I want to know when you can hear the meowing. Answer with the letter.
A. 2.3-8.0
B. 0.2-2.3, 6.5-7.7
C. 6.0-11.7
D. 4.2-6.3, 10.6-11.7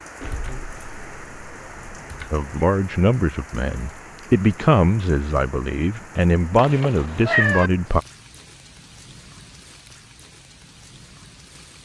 B.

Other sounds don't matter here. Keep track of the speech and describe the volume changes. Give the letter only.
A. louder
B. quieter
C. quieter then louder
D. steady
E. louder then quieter
D.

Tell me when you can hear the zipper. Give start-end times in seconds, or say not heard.
not heard.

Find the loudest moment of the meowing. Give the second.
7 s.